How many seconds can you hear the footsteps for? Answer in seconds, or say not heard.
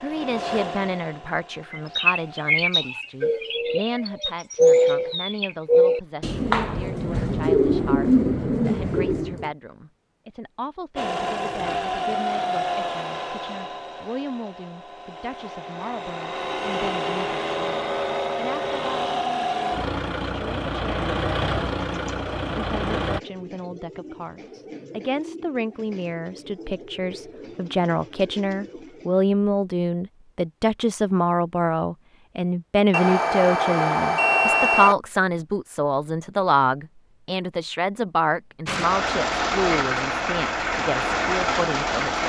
not heard.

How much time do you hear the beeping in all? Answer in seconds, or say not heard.
2 s.